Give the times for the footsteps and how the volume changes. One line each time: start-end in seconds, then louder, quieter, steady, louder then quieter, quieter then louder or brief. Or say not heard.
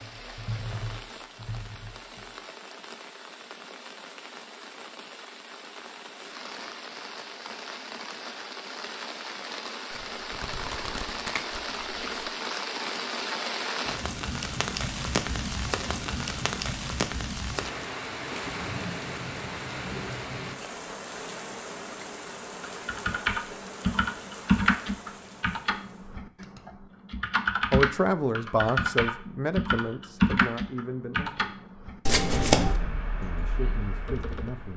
not heard.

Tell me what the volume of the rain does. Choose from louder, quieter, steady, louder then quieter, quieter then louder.
louder then quieter.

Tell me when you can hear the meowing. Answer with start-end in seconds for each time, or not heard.
not heard.